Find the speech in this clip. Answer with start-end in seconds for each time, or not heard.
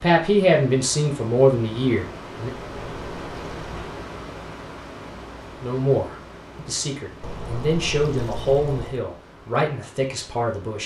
0.0-2.5, 5.5-10.8.